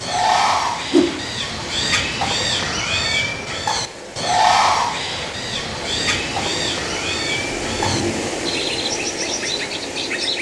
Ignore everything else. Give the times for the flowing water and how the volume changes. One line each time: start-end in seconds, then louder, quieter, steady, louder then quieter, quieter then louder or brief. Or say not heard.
0.0-10.3 louder.